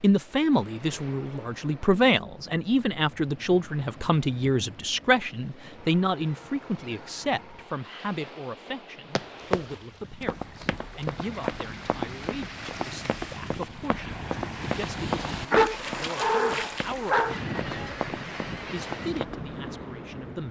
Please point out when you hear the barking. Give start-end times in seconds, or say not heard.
15.5-17.4.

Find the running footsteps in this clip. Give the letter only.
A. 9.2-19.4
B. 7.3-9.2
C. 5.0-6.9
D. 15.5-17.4
A.